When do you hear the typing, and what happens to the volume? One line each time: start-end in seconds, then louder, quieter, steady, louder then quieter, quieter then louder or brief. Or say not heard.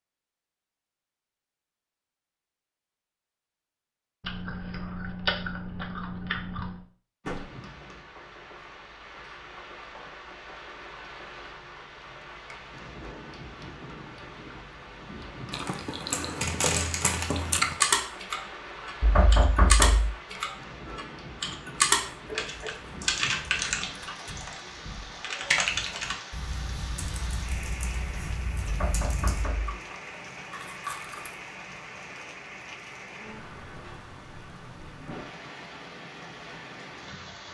17.6-29.4 quieter.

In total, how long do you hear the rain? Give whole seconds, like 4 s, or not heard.
30 s.